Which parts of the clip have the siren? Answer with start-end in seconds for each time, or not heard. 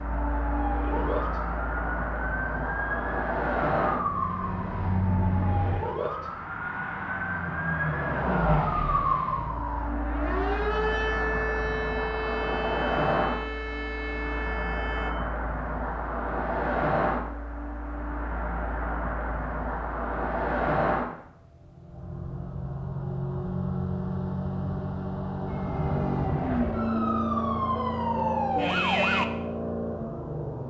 0.0-15.2, 25.4-29.2.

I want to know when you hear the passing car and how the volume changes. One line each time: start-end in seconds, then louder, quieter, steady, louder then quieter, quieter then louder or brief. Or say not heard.
0.0-30.6 steady.